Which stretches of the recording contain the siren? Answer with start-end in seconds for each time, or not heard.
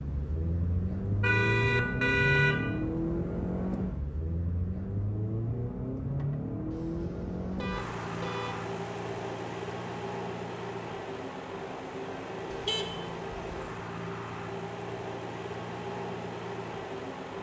not heard.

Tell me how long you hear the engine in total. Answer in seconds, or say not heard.
17 s.